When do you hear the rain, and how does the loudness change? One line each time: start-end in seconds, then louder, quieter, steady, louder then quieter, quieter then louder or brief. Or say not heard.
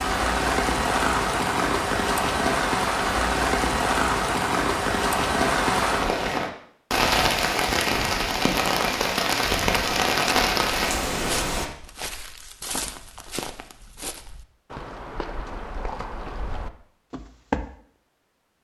0.0-11.7 steady.